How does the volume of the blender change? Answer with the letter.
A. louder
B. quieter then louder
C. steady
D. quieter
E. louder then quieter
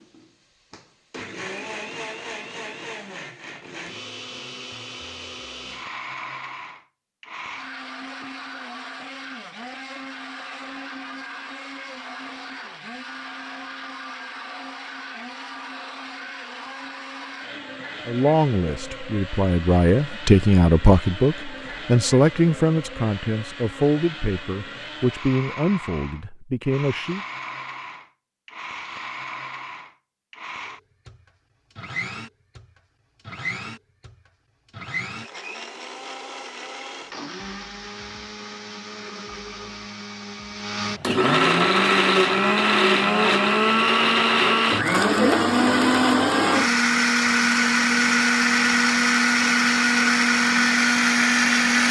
A.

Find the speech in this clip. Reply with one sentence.
The speech can be heard from 18.1 to 27.2 s.